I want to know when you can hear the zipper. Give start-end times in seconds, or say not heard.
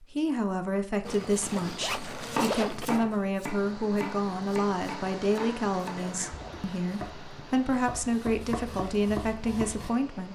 1.0-2.9, 5.8-6.6.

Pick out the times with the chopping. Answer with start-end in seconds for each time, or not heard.
1.3-9.9.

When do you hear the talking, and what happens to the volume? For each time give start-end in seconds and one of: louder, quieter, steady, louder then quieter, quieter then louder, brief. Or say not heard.
0.0-10.2 steady.